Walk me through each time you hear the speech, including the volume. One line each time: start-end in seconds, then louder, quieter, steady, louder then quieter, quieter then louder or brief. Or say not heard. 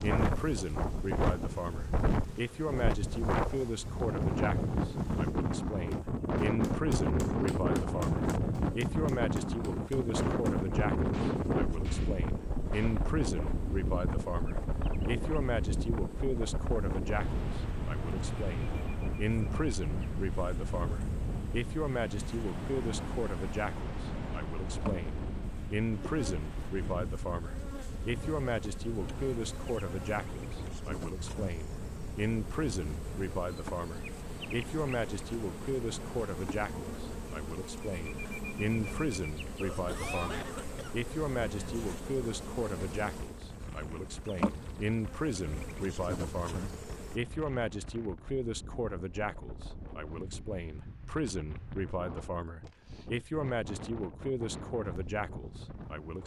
0.0-56.2 steady.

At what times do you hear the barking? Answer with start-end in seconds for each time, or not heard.
not heard.